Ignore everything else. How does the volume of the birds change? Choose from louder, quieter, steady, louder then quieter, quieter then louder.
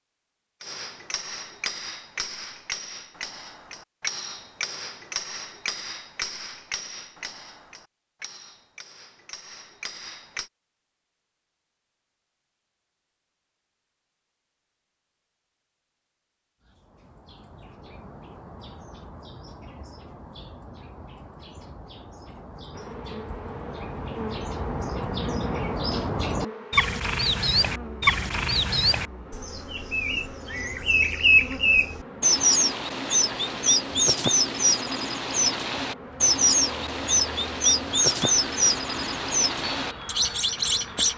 louder.